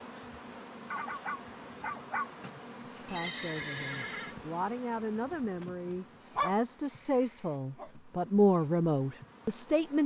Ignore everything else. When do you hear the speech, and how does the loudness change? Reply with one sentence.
You can hear the speech from 2.9 to 10.0 s, getting louder.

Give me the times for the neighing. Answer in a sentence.
You can hear the neighing from 3.0 to 4.3 s.